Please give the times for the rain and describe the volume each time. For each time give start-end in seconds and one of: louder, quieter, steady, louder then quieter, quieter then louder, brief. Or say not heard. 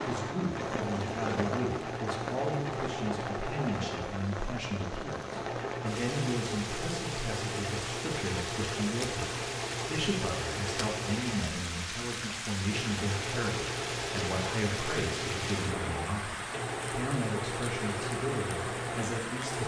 0.0-19.6 steady.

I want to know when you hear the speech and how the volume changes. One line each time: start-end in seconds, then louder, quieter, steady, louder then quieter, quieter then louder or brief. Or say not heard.
0.1-19.6 steady.